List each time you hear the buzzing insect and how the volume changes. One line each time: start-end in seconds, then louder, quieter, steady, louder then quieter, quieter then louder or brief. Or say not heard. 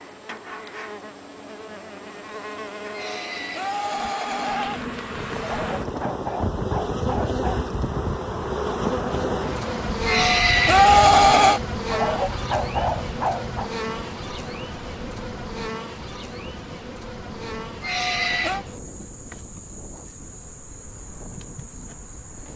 0.0-22.5 louder then quieter.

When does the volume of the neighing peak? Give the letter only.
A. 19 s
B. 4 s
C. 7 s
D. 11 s
D.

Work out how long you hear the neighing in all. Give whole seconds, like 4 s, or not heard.
4 s.